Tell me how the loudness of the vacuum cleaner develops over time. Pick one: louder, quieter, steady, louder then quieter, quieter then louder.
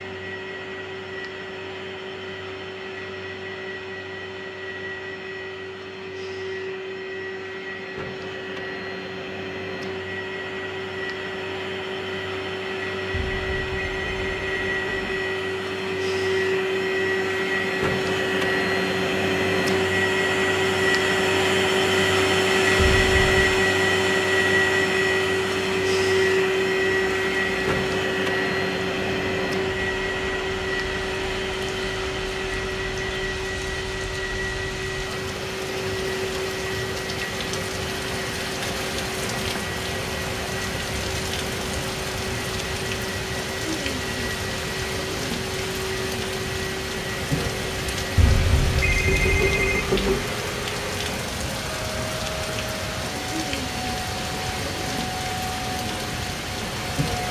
louder then quieter.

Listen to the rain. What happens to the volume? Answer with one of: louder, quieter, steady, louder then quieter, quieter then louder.
louder.